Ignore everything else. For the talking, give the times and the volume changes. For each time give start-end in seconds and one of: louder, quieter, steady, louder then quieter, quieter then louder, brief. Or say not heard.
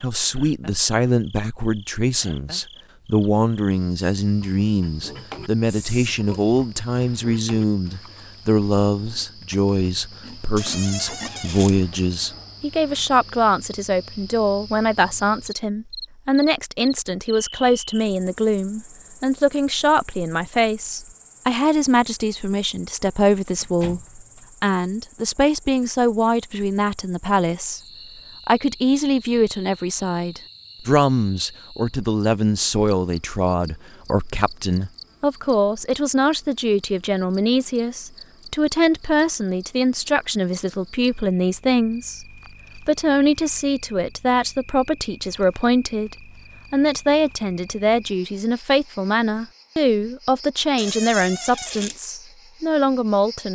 0.0-27.8 steady
28.4-53.5 steady.